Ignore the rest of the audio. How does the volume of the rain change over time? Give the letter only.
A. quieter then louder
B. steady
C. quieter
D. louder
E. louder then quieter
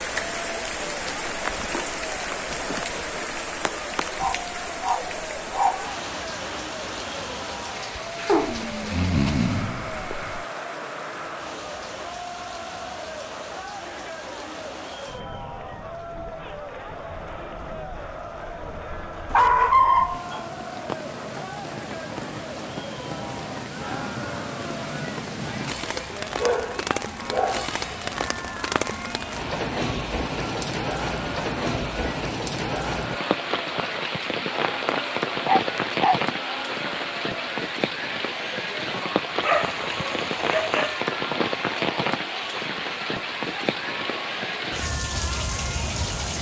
A.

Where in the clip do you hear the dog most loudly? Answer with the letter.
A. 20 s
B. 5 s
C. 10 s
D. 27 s
A.